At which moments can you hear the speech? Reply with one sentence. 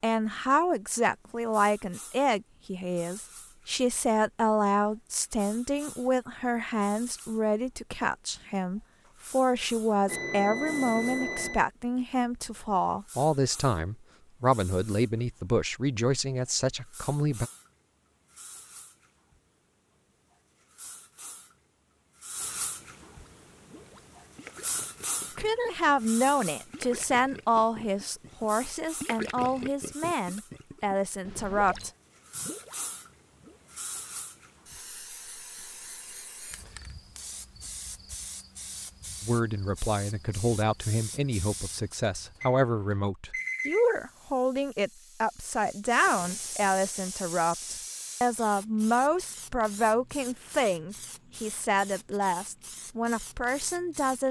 The speech can be heard from 0.0 to 17.5 s, from 25.4 to 31.9 s and from 39.2 to 54.2 s.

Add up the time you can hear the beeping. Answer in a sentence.
The beeping can be heard for 4 seconds in total.